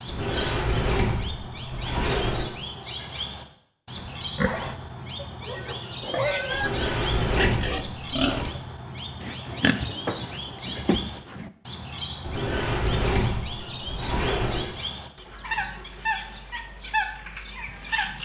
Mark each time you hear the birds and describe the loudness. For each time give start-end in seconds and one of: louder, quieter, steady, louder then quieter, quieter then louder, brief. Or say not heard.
0.0-18.2 steady.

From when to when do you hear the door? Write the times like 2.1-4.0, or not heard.
0.1-2.5, 6.5-8.6, 12.2-14.8.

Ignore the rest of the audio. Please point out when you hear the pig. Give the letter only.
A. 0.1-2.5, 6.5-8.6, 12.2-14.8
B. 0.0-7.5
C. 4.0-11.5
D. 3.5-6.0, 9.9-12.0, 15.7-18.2
C.